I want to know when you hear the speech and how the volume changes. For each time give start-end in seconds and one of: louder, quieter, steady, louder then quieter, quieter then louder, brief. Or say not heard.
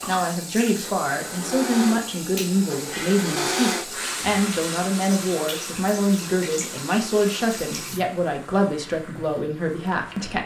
0.1-10.4 steady.